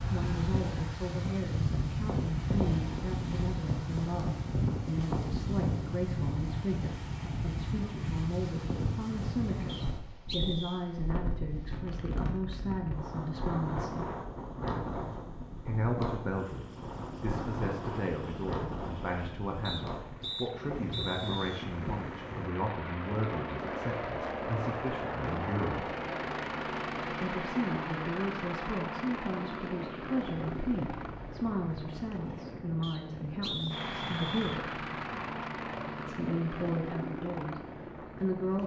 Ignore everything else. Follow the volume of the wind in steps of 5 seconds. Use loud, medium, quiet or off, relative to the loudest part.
loud, loud, medium, medium, medium, medium, quiet, quiet.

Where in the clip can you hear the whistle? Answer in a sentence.
The whistle can be heard from 9.7 to 10.8 s, from 19.6 to 21.6 s and from 32.8 to 34.6 s.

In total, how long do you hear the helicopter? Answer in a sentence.
The helicopter can be heard for 22 seconds in total.